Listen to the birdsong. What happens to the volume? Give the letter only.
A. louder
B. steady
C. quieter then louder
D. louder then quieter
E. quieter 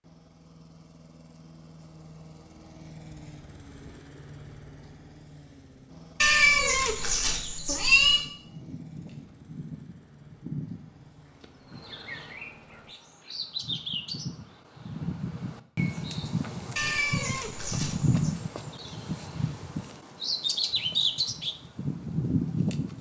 A.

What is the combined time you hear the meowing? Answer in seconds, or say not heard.
4 s.